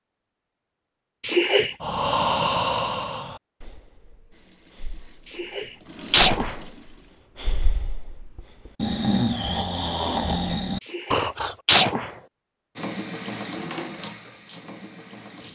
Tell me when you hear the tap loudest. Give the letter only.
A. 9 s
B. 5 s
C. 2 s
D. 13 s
D.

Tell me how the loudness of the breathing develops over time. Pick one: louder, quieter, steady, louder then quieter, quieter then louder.
quieter then louder.